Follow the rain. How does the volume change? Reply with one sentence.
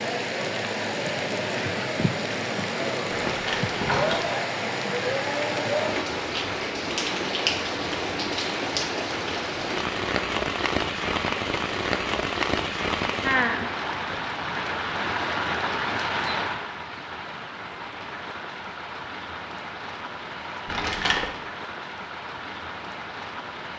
The volume of the rain goes down.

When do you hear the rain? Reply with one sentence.
You can hear the rain from 0.0 to 23.7 s.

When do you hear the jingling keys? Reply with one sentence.
You can hear the jingling keys from 3.2 to 4.3 s and from 20.6 to 21.3 s.